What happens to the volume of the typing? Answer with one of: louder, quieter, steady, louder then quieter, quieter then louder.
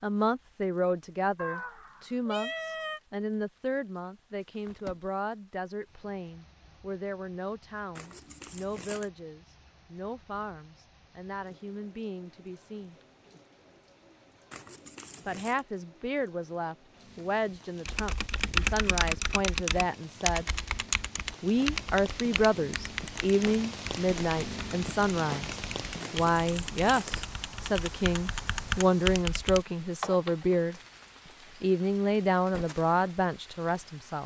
quieter then louder.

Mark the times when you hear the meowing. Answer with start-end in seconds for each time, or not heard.
1.4-3.0.